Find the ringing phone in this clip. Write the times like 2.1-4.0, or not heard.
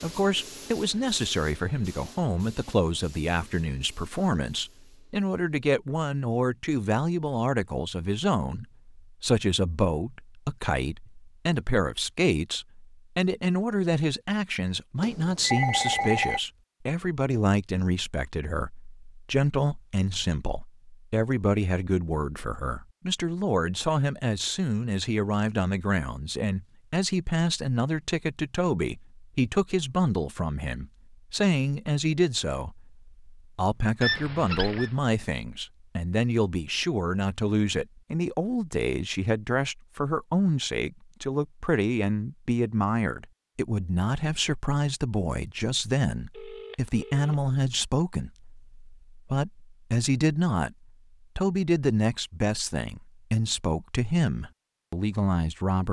15.0-16.4, 34.0-34.9, 46.3-47.4.